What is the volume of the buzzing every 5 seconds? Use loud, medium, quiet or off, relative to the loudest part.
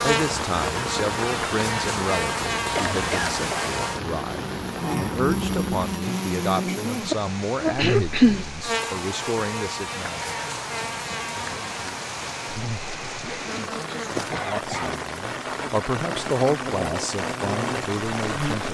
loud, loud, medium, medium.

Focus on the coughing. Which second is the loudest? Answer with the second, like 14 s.
8 s.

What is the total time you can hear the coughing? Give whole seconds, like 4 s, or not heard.
4 s.